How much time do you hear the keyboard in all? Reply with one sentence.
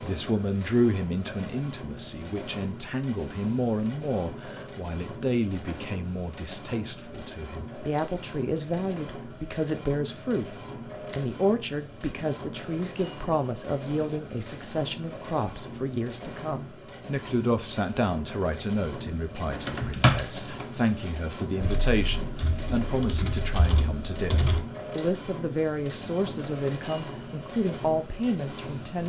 The keyboard can be heard for 5 seconds in total.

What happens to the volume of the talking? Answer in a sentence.
The volume of the talking stays about the same.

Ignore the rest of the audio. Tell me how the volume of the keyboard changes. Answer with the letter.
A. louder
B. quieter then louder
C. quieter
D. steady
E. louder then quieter
B.